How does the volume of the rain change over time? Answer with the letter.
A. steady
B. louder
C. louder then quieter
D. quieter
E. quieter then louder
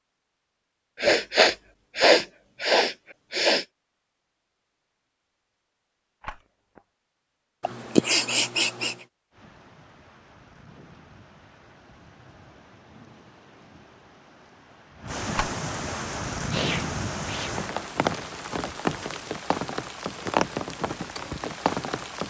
B.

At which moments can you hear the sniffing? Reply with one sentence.
The sniffing can be heard from 1.0 to 3.6 s, from 7.6 to 8.9 s and from 16.4 to 17.5 s.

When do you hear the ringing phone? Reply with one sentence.
The ringing phone can be heard from 6.2 to 6.8 s and from 15.3 to 15.9 s.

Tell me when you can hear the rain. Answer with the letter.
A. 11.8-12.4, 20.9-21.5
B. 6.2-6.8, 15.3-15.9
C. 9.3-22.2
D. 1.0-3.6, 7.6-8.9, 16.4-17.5
C.